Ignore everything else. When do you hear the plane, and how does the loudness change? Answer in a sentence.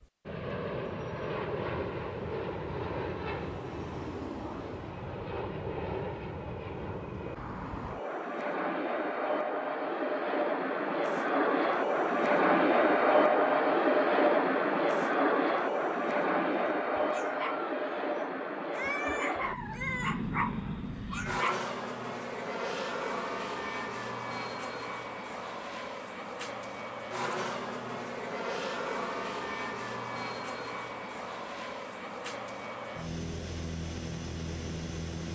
The plane can be heard from 0.0 to 35.3 s, getting louder then quieter.